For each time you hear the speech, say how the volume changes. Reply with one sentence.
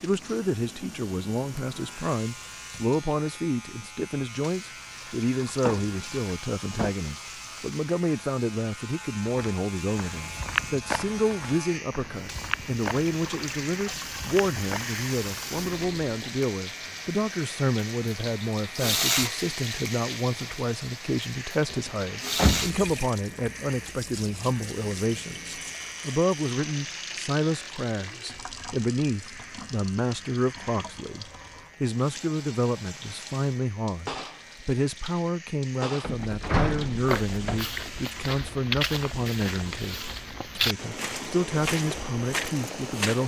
The speech can be heard from 0.0 to 43.2 s, at a steady volume.